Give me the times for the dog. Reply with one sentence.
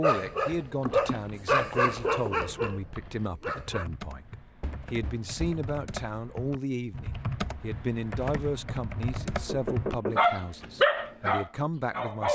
The dog can be heard from 0.0 to 3.9 s and from 10.2 to 12.3 s.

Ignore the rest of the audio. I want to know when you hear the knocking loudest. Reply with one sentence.
The volume of the knocking peaks at 10 seconds.